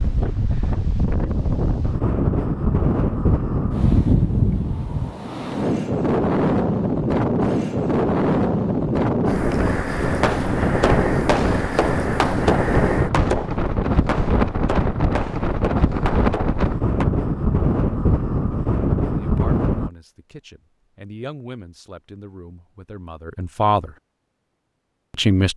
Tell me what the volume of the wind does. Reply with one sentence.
The volume of the wind stays about the same.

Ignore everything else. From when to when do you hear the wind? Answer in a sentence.
The wind can be heard from 0.0 to 19.9 s.